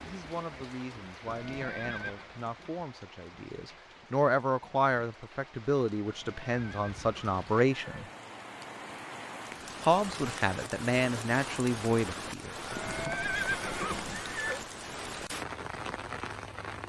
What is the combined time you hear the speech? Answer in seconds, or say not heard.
11 s.